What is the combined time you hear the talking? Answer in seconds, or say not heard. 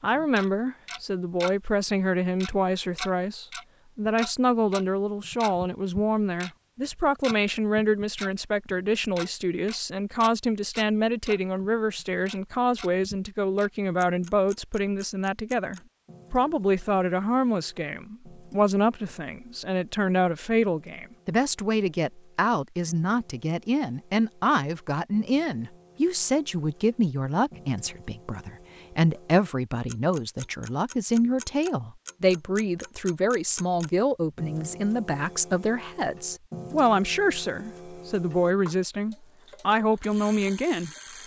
41 s.